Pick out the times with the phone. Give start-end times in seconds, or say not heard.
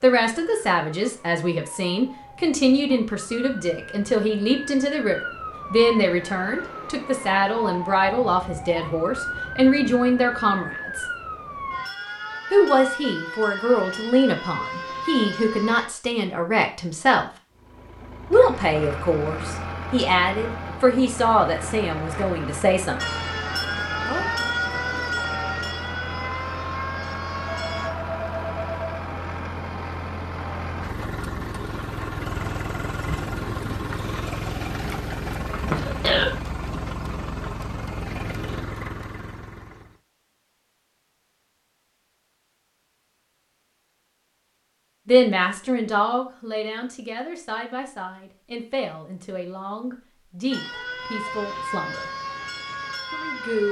27.4-29.1.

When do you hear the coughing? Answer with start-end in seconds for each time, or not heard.
35.5-36.3.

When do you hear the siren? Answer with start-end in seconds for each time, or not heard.
0.0-15.9, 22.9-27.9, 50.5-53.6.